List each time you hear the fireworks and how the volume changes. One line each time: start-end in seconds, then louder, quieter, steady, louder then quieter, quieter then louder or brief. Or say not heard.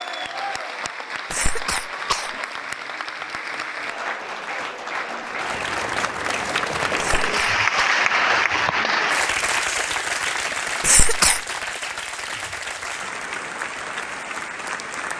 not heard.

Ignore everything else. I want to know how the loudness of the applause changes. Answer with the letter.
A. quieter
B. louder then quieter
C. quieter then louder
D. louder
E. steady
B.